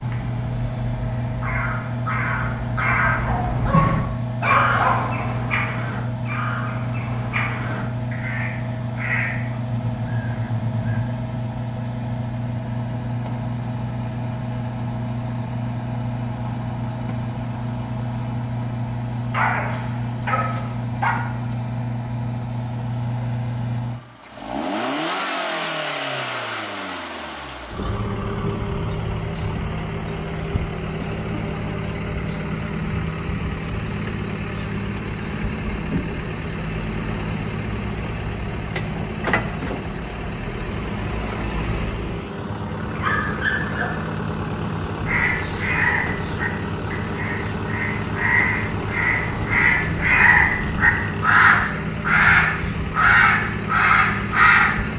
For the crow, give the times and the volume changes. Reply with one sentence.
You can hear the crow from 0.0 to 11.1 s, getting louder then quieter; and from 45.0 to 54.8 s, getting louder.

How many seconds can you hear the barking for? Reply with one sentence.
The barking can be heard for 5 seconds in total.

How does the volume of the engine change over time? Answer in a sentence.
The volume of the engine stays about the same.